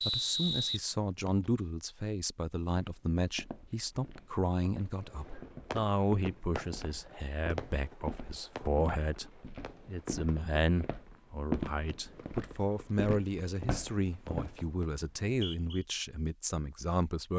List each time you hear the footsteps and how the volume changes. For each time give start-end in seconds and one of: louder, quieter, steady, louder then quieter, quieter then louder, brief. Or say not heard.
2.8-14.7 louder then quieter.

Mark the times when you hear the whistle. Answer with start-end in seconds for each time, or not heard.
0.0-1.5, 15.0-15.8.